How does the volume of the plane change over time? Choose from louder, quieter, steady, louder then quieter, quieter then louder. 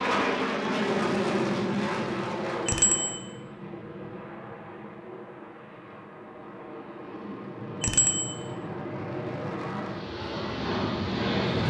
quieter then louder.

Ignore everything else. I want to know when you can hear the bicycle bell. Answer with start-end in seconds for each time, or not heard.
2.6-3.1, 7.8-8.3.